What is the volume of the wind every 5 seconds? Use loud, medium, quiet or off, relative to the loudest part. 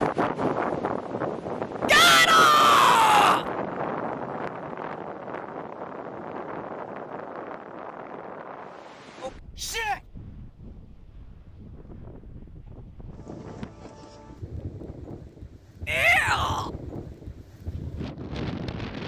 loud, medium, quiet, medium.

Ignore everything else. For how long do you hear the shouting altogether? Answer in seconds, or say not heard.
3 s.